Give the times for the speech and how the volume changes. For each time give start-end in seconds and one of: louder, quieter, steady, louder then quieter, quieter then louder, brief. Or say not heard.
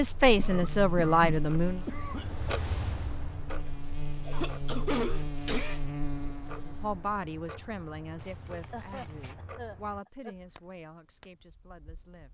0.0-1.9 brief
6.7-12.3 quieter.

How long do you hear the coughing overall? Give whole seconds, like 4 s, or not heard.
5 s.